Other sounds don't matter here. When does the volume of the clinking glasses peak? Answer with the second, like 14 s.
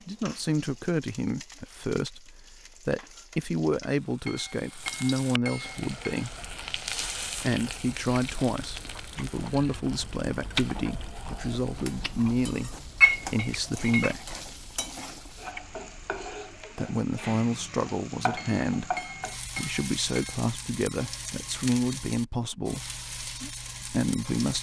13 s.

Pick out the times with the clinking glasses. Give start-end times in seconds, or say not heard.
4.2-6.2, 13.0-14.2, 18.4-20.4.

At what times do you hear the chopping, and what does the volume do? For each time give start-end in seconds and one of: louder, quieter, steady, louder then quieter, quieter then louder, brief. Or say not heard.
not heard.